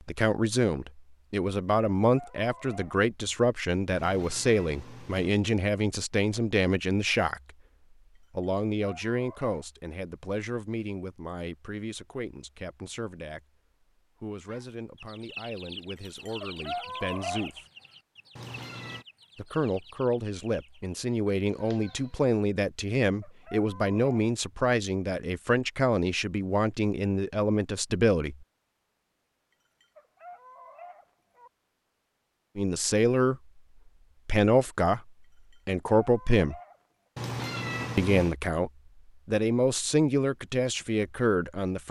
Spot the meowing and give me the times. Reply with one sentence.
The meowing can be heard from 4.0 to 5.3 s, from 18.4 to 19.1 s and from 37.1 to 38.4 s.